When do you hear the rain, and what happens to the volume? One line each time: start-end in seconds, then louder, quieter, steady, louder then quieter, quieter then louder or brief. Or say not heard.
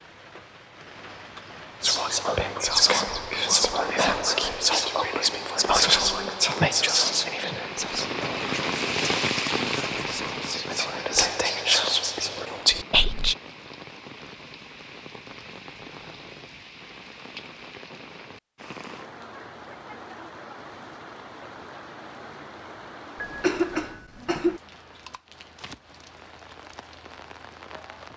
0.0-28.1 louder then quieter.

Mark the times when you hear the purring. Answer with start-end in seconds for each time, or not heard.
not heard.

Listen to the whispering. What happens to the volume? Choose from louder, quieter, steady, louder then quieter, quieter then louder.
quieter then louder.